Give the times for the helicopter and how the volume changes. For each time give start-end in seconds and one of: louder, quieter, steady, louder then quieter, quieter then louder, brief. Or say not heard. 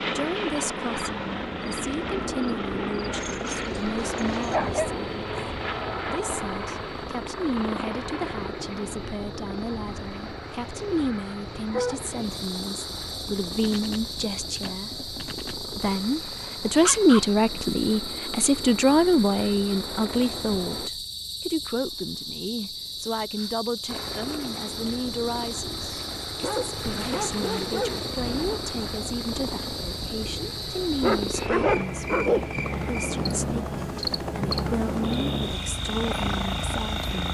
0.0-20.9 quieter
23.9-37.2 louder.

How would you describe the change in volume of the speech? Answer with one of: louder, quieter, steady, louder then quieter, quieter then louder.
louder then quieter.